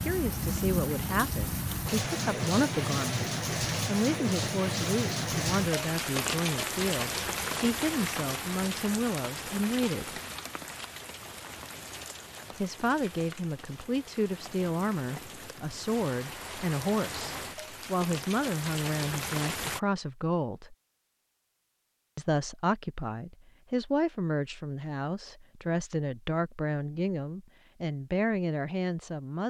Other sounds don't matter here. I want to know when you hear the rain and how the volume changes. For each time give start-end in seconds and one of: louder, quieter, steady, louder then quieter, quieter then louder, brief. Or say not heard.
0.0-19.8 quieter then louder.